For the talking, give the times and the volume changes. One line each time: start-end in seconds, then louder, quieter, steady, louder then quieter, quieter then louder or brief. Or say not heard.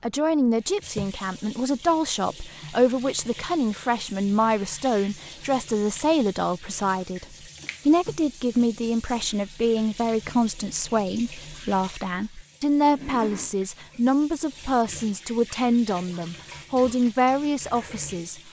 0.0-18.4 steady.